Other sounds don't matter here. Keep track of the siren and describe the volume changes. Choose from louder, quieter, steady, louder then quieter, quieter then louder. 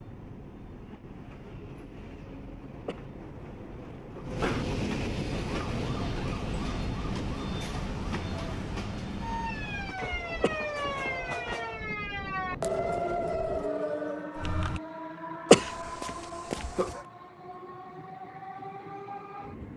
louder.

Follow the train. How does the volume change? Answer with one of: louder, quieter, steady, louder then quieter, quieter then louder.
louder then quieter.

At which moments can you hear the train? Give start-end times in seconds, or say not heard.
0.0-19.7.